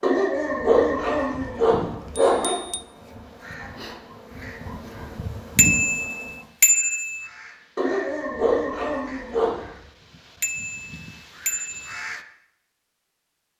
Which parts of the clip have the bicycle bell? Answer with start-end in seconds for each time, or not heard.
2.1-2.8, 5.5-7.2, 10.4-12.1.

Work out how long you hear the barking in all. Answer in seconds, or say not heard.
5 s.